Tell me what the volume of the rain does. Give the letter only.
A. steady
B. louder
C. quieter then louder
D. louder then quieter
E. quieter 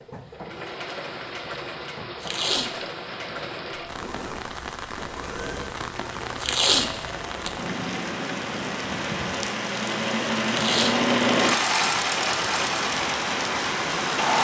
B.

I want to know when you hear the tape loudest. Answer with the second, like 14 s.
7 s.